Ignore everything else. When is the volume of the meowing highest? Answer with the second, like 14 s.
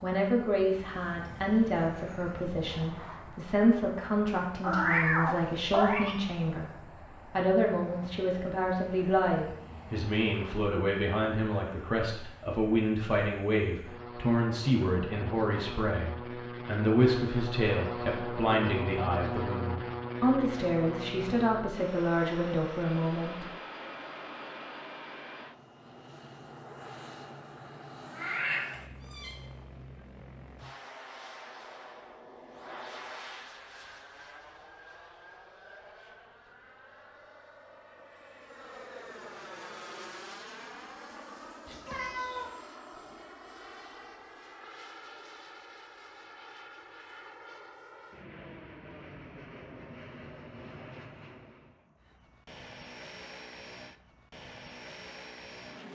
5 s.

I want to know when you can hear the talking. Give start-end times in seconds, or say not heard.
0.0-23.4.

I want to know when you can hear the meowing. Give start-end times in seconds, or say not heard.
4.6-6.2, 28.1-29.4, 41.6-42.5.